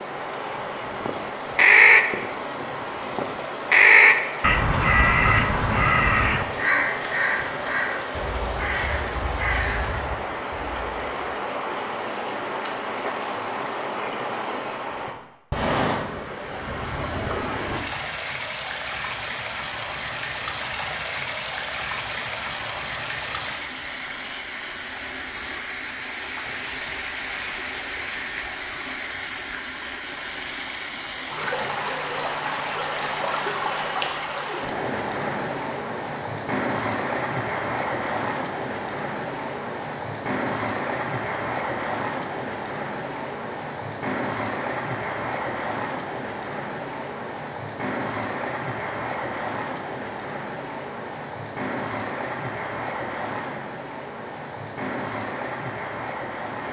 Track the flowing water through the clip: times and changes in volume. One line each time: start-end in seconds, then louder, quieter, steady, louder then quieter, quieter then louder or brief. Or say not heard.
0.0-56.6 steady.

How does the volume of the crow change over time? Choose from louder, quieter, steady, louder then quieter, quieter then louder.
quieter.